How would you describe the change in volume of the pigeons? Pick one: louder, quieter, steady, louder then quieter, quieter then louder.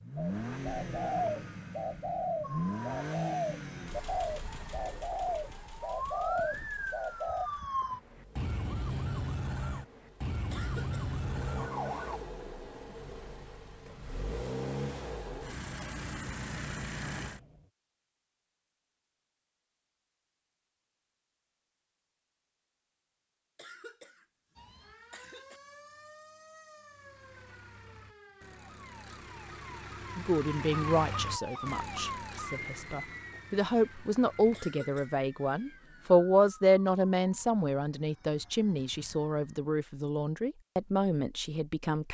steady.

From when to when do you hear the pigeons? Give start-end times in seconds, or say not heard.
0.1-7.5.